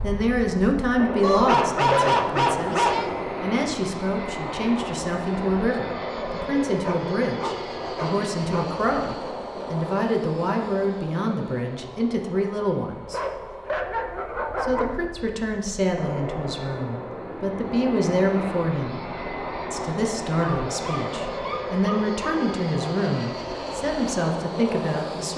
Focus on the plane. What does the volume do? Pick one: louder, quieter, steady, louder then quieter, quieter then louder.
quieter then louder.